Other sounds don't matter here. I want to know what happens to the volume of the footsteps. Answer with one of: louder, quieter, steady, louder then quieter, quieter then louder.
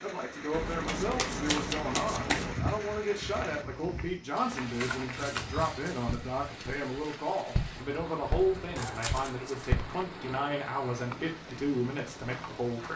louder.